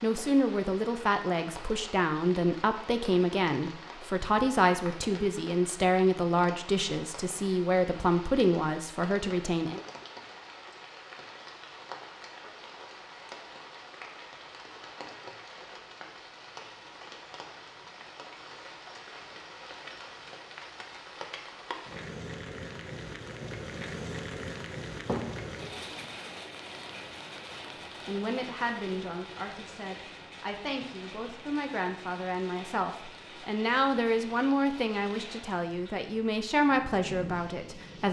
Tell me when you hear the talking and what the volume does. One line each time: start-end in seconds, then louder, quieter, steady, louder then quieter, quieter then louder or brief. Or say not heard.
0.0-9.8 steady
28.1-38.0 louder.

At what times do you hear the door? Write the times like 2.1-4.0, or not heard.
25.1-26.1.